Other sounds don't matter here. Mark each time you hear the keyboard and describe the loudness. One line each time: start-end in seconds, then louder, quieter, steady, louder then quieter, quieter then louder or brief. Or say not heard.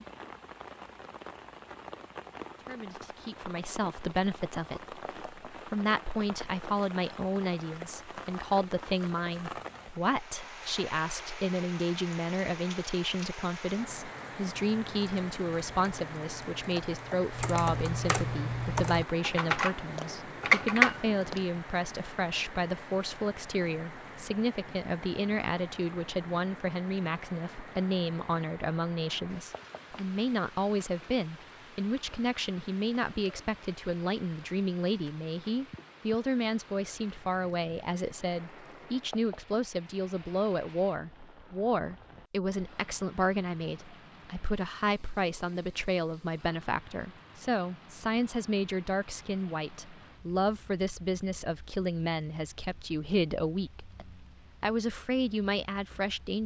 14.7-21.4 louder.